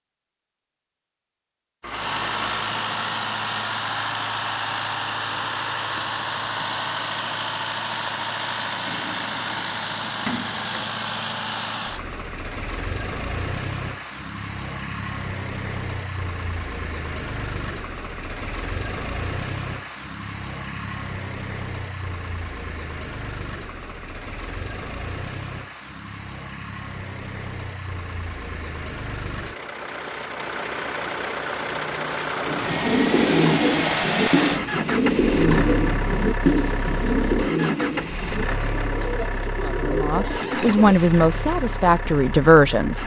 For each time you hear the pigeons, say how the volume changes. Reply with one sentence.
The pigeons can be heard from 32.5 to 41.0 s, getting quieter.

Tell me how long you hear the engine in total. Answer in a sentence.
The engine can be heard for 41 seconds in total.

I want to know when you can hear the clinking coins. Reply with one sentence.
You can hear the clinking coins from 1.8 to 2.8 s.